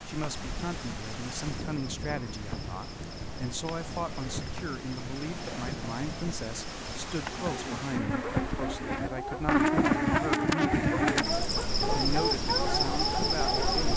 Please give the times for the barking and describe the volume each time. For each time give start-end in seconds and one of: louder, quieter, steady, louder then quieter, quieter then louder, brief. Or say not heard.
7.3-13.9 louder.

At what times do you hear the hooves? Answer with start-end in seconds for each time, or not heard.
not heard.